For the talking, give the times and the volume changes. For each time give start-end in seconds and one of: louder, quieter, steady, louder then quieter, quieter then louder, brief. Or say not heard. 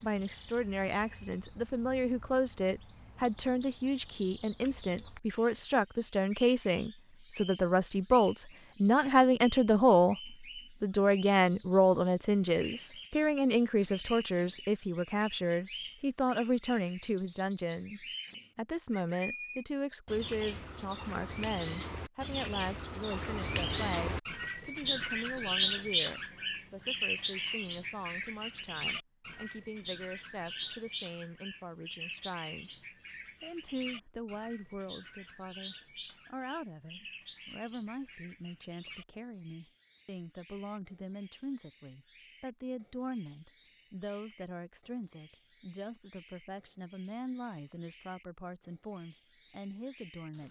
0.0-50.4 quieter.